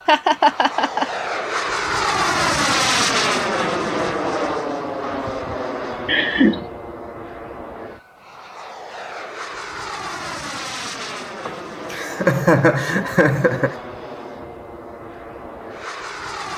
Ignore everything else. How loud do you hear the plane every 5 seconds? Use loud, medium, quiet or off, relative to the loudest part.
loud, medium, medium, medium.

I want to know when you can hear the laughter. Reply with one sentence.
The laughter can be heard from 0.1 to 1.1 s, from 6.0 to 6.7 s and from 11.4 to 13.8 s.